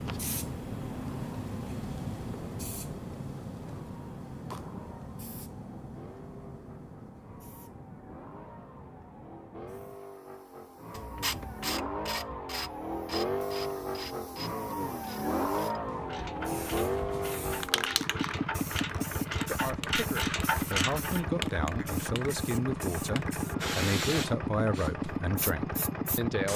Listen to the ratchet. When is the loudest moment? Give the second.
21 s.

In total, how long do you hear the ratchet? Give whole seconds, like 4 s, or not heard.
10 s.